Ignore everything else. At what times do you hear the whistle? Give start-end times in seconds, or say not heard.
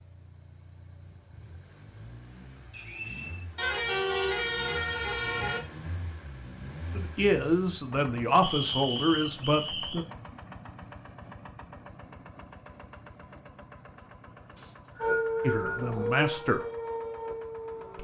2.7-3.5, 8.4-10.1, 14.6-15.9.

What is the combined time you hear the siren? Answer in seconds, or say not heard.
3 s.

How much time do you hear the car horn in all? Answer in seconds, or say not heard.
2 s.